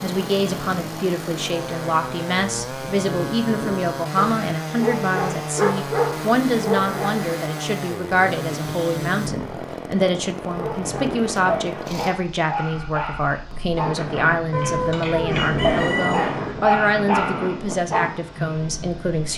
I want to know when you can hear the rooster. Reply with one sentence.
You can hear the rooster from 14.5 to 16.6 s.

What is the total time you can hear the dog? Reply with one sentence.
You can hear the dog for 11 seconds altogether.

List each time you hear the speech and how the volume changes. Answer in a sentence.
You can hear the speech from 0.0 to 19.3 s, at a steady volume.